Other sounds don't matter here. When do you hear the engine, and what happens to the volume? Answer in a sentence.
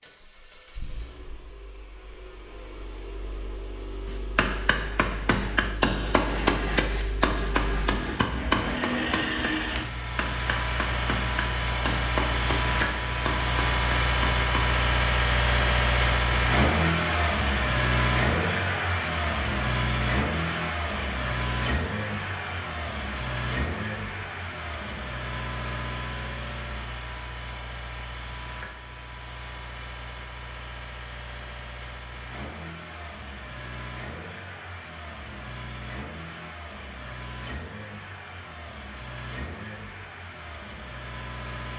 The engine can be heard from 0.0 to 41.7 s, getting louder then quieter.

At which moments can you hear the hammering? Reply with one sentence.
You can hear the hammering from 4.0 to 14.9 s.